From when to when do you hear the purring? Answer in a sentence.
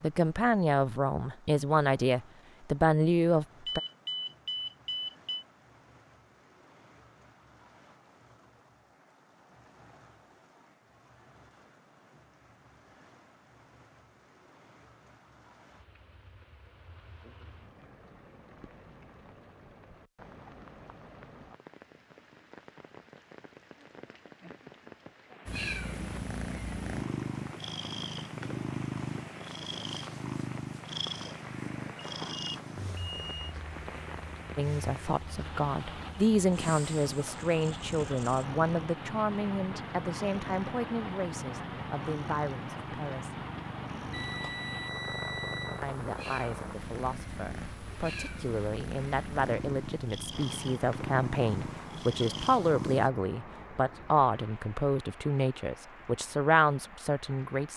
The purring can be heard from 25.4 to 53.1 s.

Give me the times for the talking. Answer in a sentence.
You can hear the talking from 0.0 to 3.8 s, from 34.5 to 43.5 s and from 45.8 to 57.7 s.